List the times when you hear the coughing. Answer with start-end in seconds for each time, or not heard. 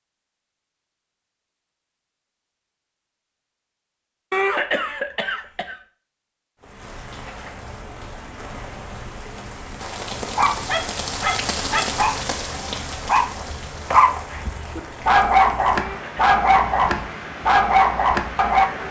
4.3-5.8, 15.8-16.2.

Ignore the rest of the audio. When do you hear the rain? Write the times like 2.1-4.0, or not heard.
6.6-18.8.